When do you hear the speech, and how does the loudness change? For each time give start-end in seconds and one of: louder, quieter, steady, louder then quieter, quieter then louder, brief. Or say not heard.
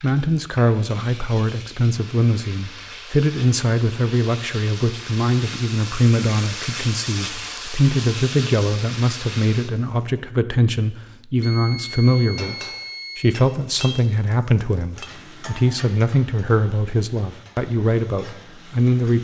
0.0-19.2 steady.